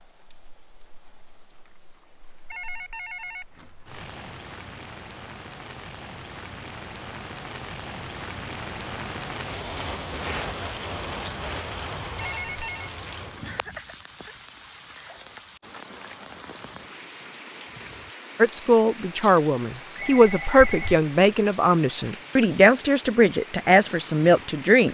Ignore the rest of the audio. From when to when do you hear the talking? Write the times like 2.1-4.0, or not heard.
18.4-24.8.